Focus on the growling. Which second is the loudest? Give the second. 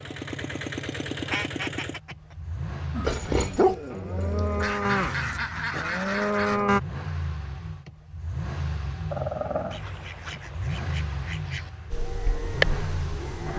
4 s.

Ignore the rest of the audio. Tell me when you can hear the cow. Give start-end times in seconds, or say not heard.
2.9-6.8, 11.9-13.5.